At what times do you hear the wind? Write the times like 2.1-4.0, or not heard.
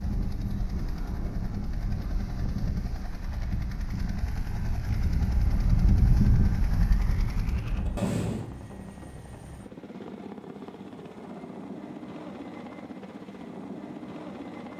0.0-8.4.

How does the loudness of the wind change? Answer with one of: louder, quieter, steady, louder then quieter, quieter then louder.
louder then quieter.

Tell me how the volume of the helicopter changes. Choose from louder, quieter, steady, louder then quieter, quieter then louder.
louder.